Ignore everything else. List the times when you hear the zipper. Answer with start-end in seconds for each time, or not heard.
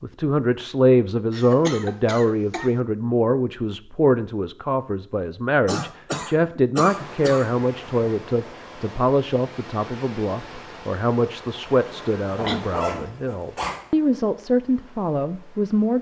12.3-13.8.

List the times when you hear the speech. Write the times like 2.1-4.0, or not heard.
0.0-15.9.